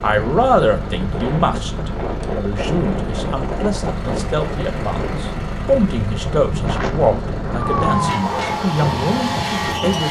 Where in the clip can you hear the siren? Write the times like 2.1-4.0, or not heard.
7.5-10.0.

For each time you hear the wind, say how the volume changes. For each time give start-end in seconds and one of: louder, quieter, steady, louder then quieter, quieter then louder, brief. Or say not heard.
0.0-10.0 steady.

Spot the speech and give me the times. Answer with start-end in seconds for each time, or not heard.
0.0-10.0.